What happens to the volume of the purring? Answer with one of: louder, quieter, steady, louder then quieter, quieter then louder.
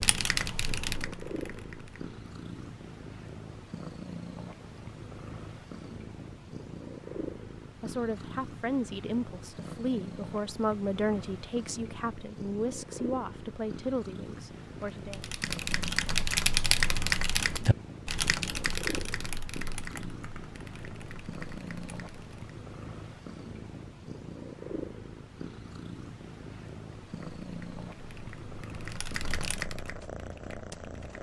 steady.